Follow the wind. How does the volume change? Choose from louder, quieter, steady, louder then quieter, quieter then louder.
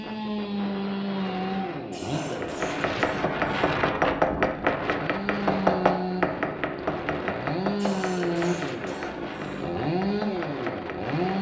louder then quieter.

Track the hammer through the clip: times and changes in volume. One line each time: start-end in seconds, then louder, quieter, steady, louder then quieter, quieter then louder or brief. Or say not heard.
2.4-11.2 quieter.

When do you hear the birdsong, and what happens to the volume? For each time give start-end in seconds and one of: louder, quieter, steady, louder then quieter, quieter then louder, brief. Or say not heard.
not heard.